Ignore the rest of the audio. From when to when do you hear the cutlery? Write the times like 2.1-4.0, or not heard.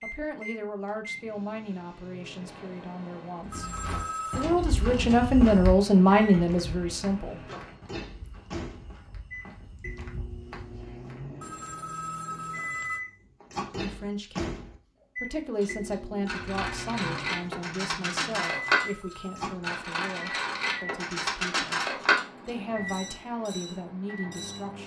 15.6-24.6.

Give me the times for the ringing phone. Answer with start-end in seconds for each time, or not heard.
3.5-4.5, 11.4-13.0, 18.8-19.5.